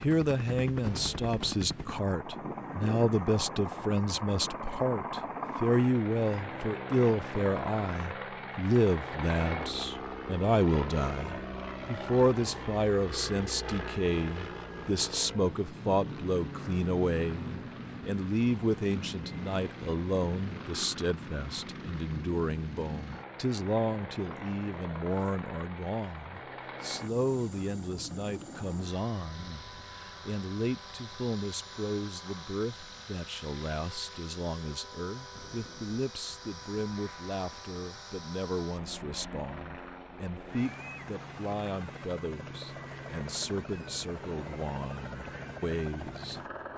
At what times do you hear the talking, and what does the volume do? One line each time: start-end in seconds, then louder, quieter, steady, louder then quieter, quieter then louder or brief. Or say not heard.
0.0-46.7 quieter.